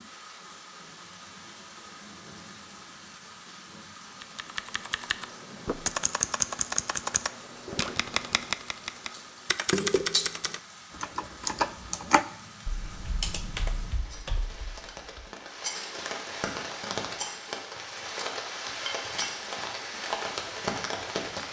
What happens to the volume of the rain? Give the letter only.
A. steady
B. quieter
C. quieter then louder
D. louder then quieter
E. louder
E.